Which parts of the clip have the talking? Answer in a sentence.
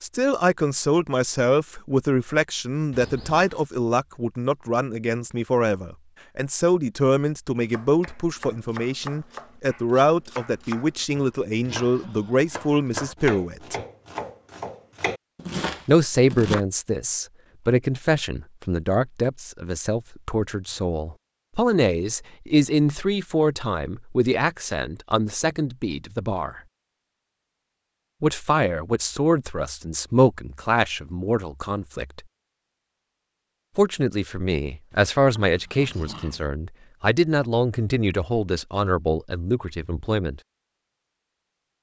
The talking can be heard from 0.0 to 13.8 s, from 15.8 to 26.6 s, from 28.2 to 32.2 s and from 33.8 to 40.4 s.